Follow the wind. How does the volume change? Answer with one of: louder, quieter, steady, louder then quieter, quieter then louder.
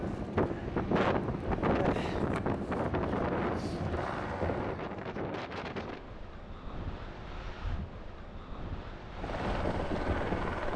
quieter.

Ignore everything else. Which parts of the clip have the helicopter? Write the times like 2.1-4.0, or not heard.
0.0-4.8, 9.1-10.7.